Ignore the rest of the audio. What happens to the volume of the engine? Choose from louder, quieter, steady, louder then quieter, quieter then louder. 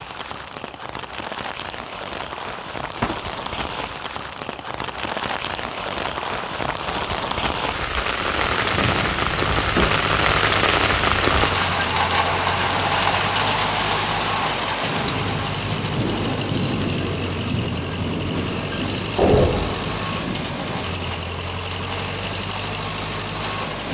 steady.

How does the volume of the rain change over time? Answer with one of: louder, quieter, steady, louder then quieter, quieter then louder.
louder then quieter.